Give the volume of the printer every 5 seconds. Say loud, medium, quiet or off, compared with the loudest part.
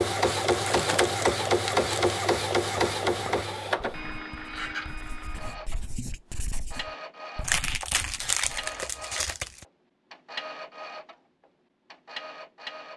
loud, quiet, quiet.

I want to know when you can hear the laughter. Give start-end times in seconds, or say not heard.
not heard.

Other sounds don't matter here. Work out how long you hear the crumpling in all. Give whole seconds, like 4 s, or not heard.
4 s.